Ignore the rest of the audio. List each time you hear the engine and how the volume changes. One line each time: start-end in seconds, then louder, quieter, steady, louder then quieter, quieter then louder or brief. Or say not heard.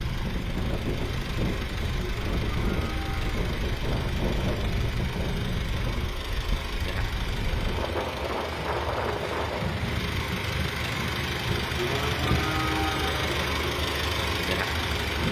0.0-15.2 louder.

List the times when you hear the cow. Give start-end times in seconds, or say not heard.
2.0-3.3, 11.7-13.3.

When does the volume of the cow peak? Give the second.
13 s.